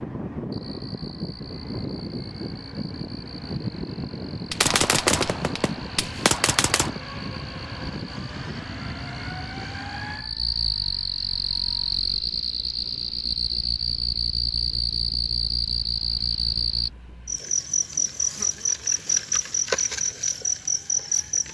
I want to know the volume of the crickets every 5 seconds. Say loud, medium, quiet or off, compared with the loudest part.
quiet, quiet, loud, loud, loud.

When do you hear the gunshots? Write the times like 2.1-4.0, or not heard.
4.5-7.0.